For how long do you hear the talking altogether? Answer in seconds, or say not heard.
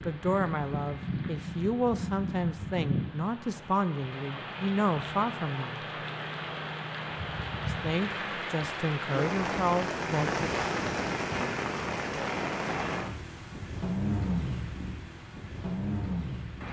9 s.